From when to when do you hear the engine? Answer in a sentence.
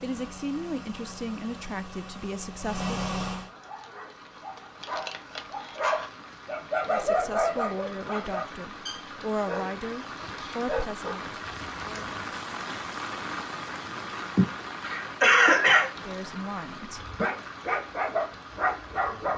The engine can be heard from 0.0 to 3.5 s.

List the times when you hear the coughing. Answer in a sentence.
The coughing can be heard from 14.3 to 15.9 s.